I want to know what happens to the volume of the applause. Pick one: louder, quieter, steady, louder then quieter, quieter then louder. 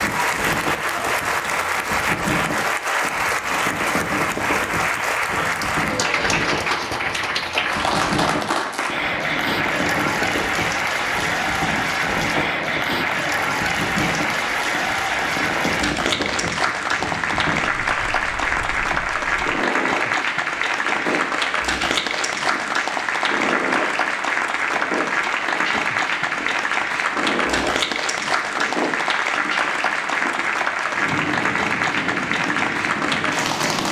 steady.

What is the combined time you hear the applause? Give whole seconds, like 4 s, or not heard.
34 s.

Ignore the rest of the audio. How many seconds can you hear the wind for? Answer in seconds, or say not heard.
34 s.